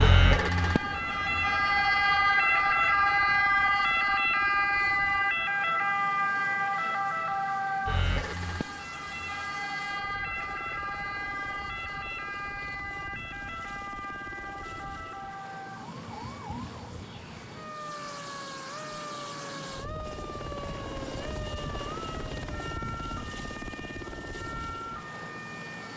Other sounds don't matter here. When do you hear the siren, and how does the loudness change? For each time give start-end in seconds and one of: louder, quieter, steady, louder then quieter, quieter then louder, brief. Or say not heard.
0.0-25.9 quieter.